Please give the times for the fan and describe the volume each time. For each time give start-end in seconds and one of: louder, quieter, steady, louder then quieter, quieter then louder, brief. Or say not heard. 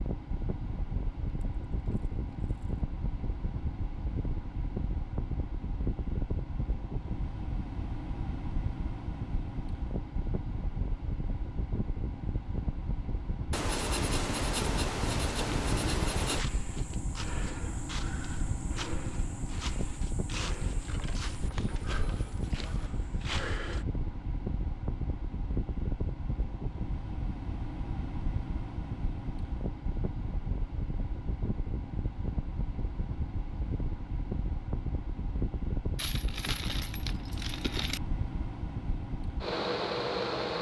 0.0-40.5 steady.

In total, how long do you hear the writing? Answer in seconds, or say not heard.
3 s.